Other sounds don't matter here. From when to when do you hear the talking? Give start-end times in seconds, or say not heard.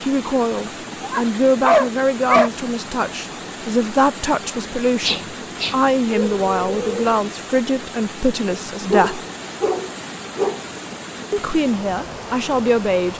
0.0-9.2, 11.3-13.1.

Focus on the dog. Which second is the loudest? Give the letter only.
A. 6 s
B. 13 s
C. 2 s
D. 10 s
C.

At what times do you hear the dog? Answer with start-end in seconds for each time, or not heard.
1.0-2.5, 5.0-7.2, 8.9-10.6.